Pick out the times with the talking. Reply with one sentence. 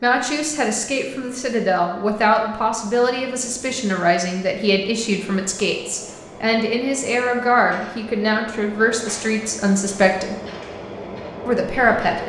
The talking can be heard from 0.0 to 10.3 s and from 11.4 to 12.2 s.